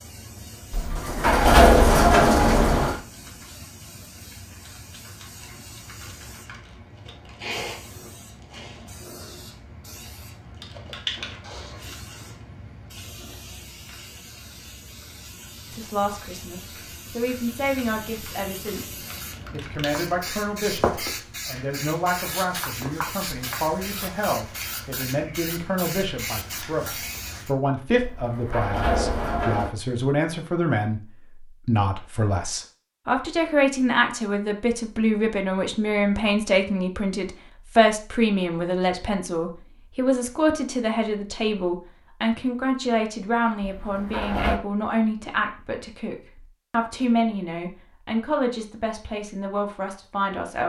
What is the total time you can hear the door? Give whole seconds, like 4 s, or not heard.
5 s.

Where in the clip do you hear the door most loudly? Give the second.
2 s.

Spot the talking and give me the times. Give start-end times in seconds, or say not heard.
15.7-50.6.